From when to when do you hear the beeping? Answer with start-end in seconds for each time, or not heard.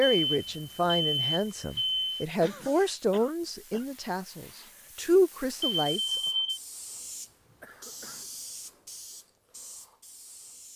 0.0-2.2, 5.7-6.6.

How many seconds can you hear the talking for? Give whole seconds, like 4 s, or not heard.
6 s.